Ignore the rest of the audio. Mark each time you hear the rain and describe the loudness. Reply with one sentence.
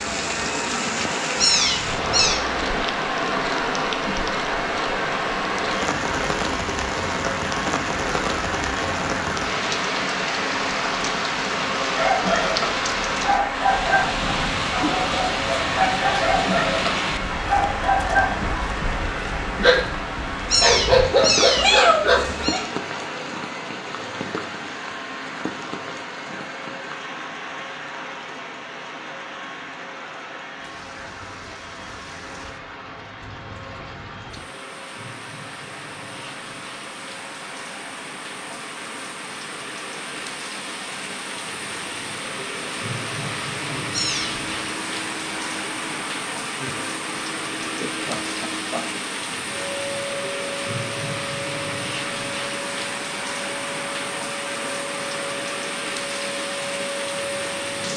You can hear the rain from 0.0 to 57.9 s, getting quieter then louder.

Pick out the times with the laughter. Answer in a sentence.
You can hear the laughter from 47.6 to 48.9 s.